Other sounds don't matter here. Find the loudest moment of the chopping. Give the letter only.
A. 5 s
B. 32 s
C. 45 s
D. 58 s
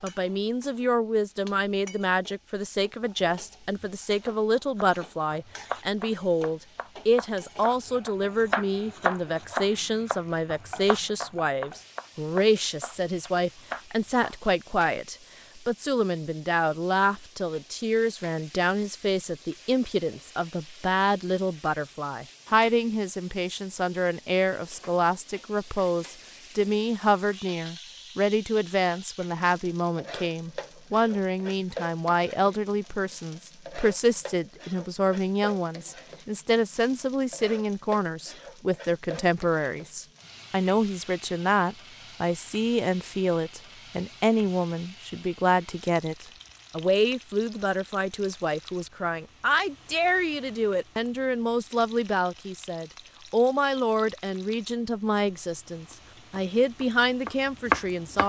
D.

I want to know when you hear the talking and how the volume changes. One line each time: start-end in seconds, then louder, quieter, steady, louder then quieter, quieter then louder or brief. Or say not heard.
0.0-58.2 steady.